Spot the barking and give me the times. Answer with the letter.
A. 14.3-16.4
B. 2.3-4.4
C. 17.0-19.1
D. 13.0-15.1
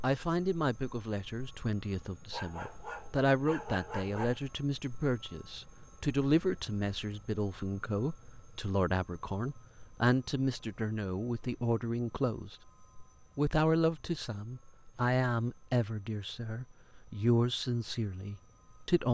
B.